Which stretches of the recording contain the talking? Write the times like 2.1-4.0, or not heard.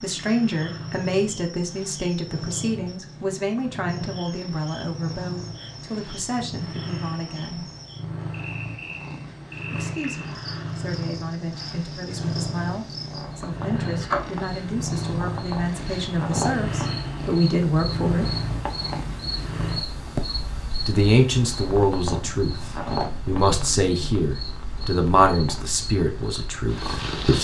0.0-7.7, 9.7-18.4, 20.9-27.4.